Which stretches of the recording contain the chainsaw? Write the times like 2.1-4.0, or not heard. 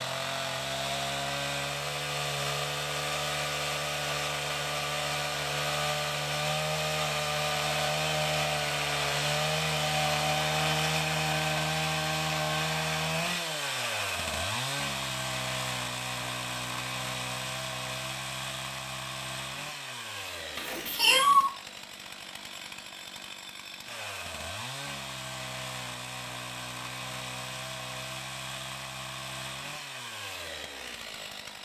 0.0-31.6.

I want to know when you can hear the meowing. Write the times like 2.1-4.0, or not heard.
20.6-21.5.